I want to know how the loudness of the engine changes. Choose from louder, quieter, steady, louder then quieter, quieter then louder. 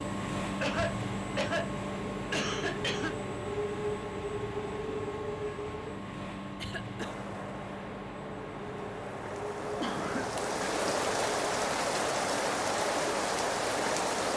quieter.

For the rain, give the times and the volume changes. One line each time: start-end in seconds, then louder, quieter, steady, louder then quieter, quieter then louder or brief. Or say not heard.
7.0-14.3 louder.